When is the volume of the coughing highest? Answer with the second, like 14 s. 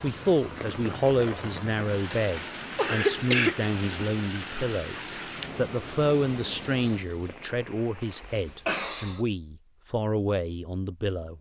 3 s.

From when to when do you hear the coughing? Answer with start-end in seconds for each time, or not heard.
2.7-3.5, 8.2-9.2.